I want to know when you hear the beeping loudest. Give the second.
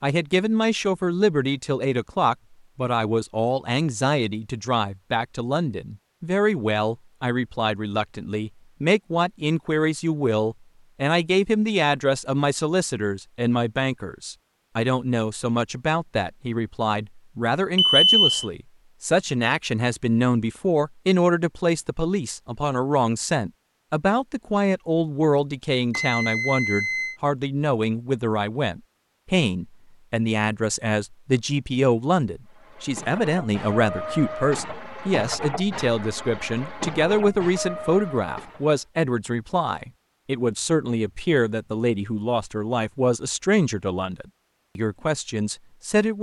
18 s.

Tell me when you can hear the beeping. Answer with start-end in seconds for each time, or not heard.
17.8-18.4, 25.9-27.1.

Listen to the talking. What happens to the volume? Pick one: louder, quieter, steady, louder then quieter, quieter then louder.
steady.